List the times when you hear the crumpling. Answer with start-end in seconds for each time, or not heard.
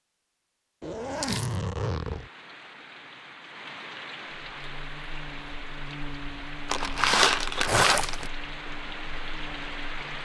1.2-1.6, 6.7-8.2.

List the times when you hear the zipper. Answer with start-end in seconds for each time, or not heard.
0.8-2.3, 7.7-8.3.